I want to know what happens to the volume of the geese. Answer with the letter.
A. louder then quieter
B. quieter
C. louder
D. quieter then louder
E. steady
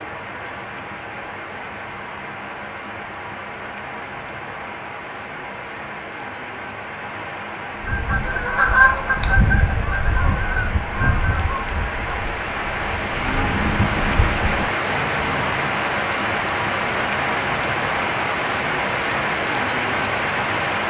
B.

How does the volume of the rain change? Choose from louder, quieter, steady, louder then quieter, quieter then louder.
louder.